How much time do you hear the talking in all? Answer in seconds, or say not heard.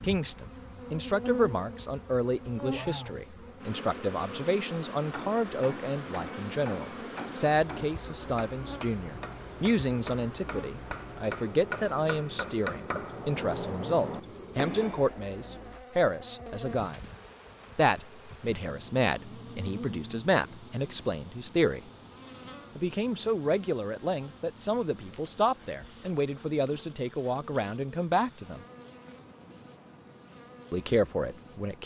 28 s.